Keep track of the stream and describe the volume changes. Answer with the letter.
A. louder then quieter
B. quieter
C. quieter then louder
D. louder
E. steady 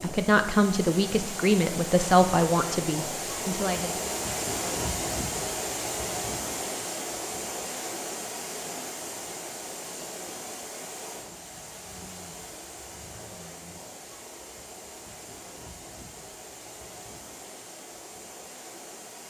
B.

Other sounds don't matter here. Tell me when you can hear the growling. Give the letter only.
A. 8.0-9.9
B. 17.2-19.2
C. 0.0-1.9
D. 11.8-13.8
D.